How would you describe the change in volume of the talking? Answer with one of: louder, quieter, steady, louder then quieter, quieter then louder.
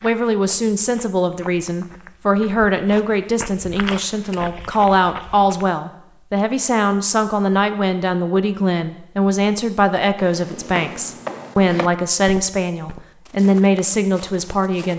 steady.